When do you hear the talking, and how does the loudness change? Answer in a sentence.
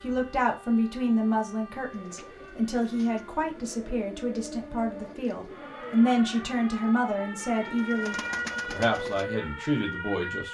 You can hear the talking from 0.0 to 10.4 s, at a steady volume.